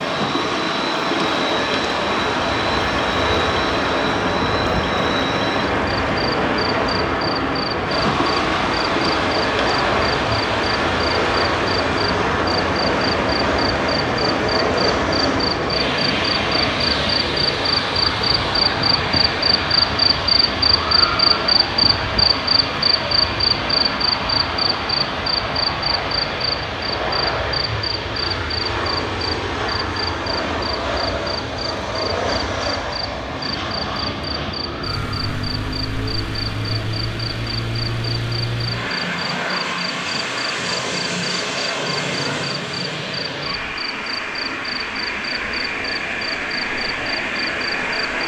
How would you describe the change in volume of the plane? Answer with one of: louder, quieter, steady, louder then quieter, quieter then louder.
steady.